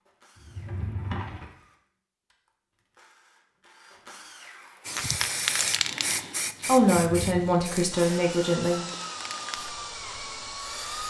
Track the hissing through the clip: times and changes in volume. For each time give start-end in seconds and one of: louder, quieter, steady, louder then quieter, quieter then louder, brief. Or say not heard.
4.8-11.0 quieter.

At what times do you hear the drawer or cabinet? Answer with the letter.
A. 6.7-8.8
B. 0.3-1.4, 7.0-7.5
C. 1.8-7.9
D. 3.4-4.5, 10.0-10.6
B.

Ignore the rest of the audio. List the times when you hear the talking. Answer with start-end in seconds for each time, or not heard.
6.7-8.8.